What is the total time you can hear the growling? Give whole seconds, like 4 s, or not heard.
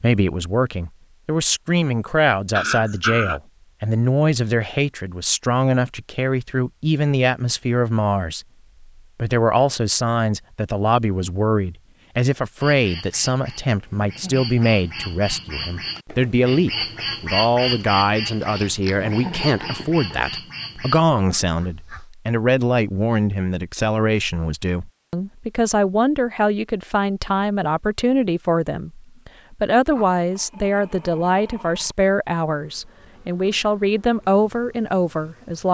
5 s.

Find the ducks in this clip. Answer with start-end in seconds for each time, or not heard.
12.6-22.1.